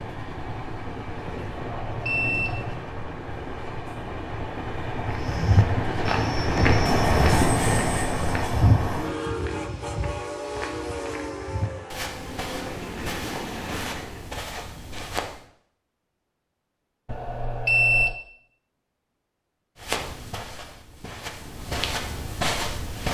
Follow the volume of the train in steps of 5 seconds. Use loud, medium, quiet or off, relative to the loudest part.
medium, loud, medium, off, off.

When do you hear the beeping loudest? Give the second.
18 s.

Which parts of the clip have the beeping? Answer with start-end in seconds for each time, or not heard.
1.5-2.8, 17.1-18.1.